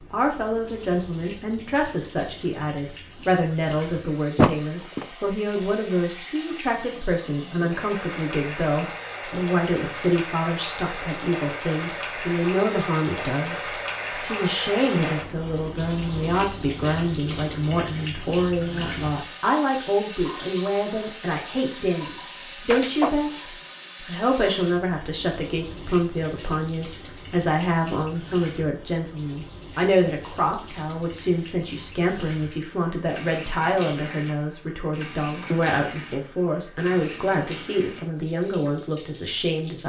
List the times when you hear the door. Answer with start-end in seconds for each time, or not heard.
4.3-5.0, 22.7-23.1.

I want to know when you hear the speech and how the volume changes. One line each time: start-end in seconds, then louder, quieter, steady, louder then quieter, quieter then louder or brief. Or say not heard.
0.0-39.8 steady.